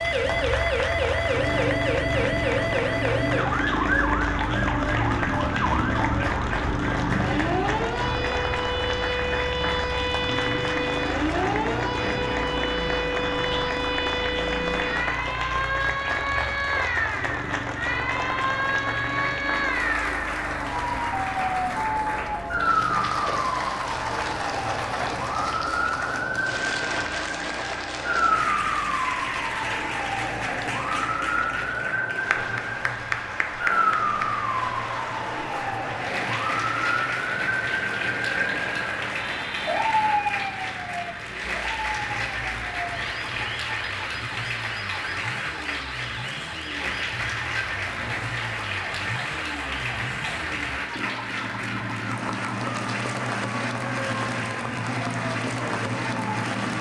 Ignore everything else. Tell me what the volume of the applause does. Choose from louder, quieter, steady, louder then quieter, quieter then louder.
steady.